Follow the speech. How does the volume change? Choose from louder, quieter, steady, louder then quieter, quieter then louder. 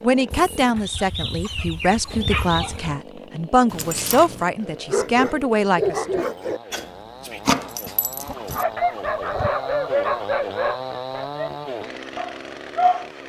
steady.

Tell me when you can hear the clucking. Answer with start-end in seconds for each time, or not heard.
0.3-3.0, 8.2-10.1.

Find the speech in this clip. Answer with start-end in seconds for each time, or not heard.
0.0-6.2.